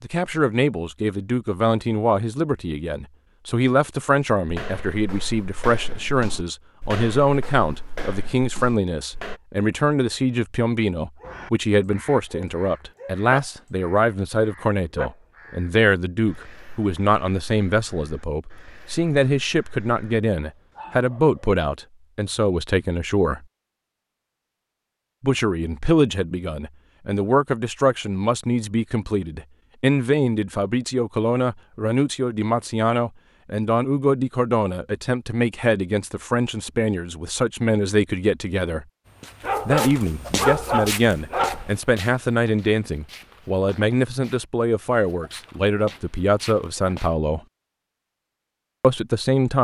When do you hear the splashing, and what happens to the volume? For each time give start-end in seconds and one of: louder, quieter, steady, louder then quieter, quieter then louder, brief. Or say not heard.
not heard.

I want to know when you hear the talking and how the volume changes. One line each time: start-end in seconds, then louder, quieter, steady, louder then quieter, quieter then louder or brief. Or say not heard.
0.0-23.4 steady
25.2-38.9 steady
39.6-47.4 steady
48.8-49.6 brief.